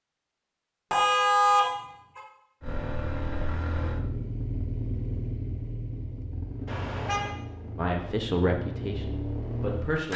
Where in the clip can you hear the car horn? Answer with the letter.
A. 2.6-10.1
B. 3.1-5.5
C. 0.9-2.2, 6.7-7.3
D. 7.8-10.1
C.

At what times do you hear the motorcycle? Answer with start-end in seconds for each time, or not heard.
2.6-10.1.